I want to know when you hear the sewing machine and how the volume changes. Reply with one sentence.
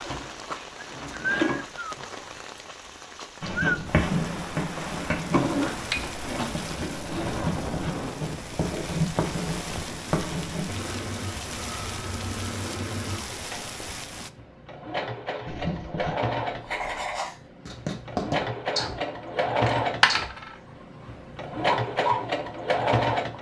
The sewing machine can be heard briefly from 0.0 to 1.6 s; briefly from 5.3 to 7.5 s; and from 10.7 to 23.3 s, getting louder.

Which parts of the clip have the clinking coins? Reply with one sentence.
You can hear the clinking coins from 19.6 to 20.6 s.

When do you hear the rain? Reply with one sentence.
You can hear the rain from 0.0 to 14.3 s.